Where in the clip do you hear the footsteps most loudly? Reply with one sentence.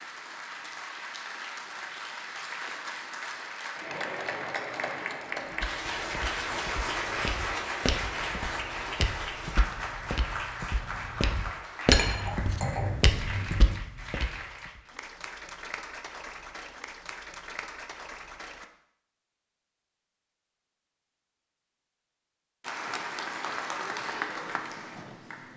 The loudest moment of the footsteps is at 12 seconds.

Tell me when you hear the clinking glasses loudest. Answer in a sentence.
The loudest moment of the clinking glasses is at 12 seconds.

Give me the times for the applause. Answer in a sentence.
You can hear the applause from 0.0 to 18.6 s and from 22.6 to 25.5 s.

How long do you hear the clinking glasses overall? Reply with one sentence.
You can hear the clinking glasses for 2 seconds altogether.